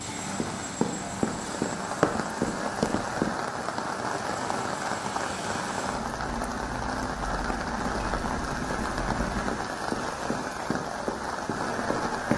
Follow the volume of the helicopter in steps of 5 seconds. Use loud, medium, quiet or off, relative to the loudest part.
loud, loud, off.